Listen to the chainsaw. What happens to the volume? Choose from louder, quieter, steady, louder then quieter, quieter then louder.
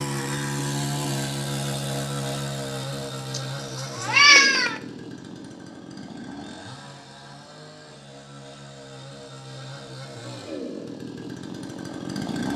quieter then louder.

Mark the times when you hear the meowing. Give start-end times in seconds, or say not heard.
3.3-4.8.